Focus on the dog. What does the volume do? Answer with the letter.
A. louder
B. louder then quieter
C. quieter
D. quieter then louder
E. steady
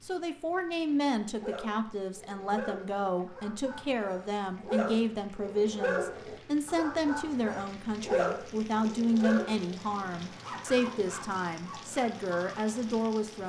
B.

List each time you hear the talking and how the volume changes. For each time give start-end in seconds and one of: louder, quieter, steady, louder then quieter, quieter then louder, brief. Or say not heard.
0.0-13.4 steady.